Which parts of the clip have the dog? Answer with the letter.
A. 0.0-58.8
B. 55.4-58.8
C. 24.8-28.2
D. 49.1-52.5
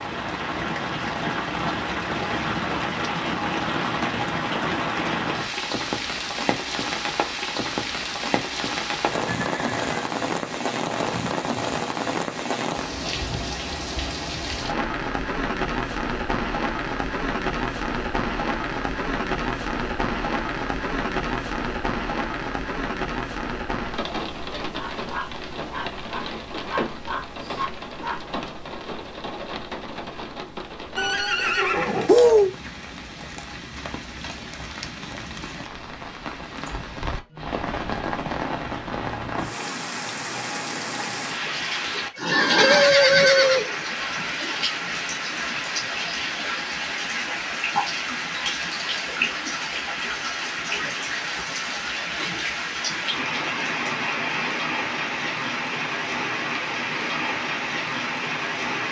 C.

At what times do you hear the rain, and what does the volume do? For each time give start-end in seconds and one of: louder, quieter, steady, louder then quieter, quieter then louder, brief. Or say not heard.
0.0-58.8 quieter then louder.